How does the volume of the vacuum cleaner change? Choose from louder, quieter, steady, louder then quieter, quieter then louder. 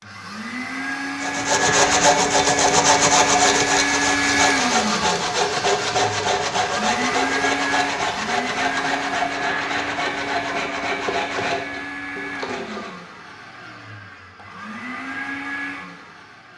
quieter.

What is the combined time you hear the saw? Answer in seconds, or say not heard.
12 s.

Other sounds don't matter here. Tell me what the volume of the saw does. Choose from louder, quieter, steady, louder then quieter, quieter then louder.
quieter.